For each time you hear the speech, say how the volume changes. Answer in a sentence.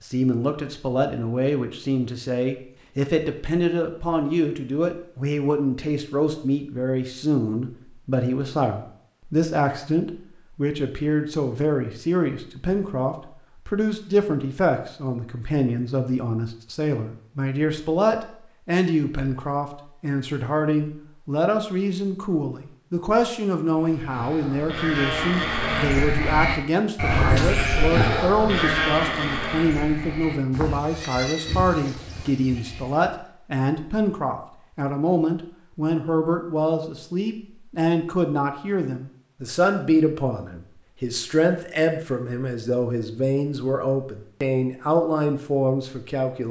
You can hear the speech from 0.0 to 46.4 s, at a steady volume.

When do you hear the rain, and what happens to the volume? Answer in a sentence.
You can't hear the rain here.